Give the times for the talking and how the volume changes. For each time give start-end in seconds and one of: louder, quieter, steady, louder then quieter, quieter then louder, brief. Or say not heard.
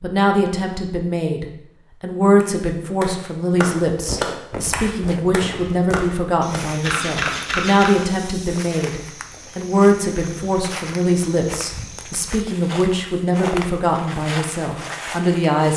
0.0-15.7 steady.